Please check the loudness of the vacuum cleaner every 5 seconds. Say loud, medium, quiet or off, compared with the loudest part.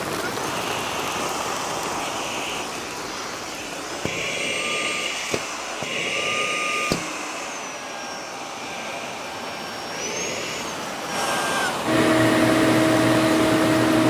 medium, medium, loud.